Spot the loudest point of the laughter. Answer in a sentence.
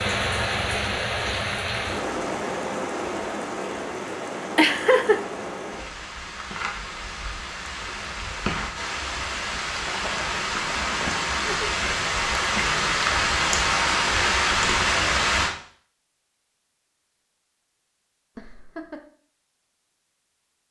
The loudest moment of the laughter is at 5 seconds.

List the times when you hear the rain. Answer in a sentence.
The rain can be heard from 0.0 to 15.6 s.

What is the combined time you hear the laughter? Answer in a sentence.
The laughter can be heard for 3 seconds in total.